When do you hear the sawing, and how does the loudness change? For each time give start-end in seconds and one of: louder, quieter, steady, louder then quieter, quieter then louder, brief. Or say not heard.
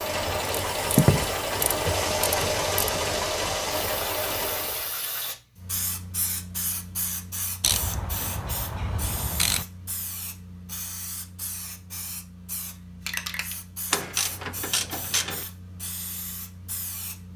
not heard.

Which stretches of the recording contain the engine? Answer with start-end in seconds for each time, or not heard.
0.0-5.0.